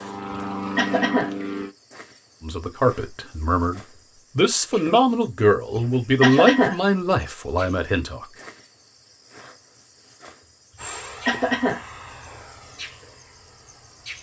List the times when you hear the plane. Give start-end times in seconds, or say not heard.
0.0-1.8, 10.8-14.1.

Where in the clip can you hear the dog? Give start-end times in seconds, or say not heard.
not heard.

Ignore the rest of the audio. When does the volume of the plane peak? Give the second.
1 s.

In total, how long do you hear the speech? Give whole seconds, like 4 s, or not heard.
6 s.